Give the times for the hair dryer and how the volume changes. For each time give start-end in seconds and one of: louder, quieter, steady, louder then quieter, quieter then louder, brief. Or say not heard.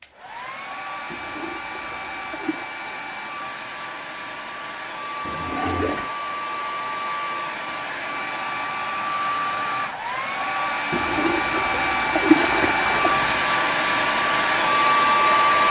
0.0-15.6 louder.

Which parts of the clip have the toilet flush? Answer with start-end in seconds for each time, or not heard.
1.1-2.7, 5.2-6.1, 10.9-13.4.